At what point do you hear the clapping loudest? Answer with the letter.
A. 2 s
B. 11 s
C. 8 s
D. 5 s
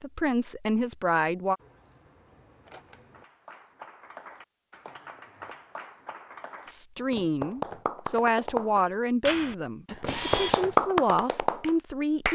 B.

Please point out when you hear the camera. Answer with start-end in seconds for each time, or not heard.
1.6-3.2, 10.1-10.7.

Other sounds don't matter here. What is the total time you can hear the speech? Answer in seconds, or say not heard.
7 s.